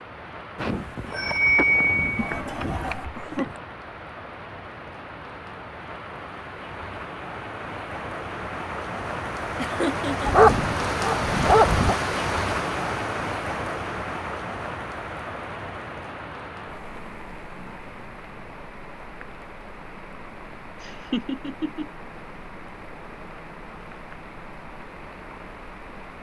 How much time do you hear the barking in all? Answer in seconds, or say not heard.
2 s.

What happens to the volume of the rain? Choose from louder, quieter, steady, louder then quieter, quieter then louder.
louder then quieter.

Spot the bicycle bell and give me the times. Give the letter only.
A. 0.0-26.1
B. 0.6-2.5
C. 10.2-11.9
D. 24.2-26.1
B.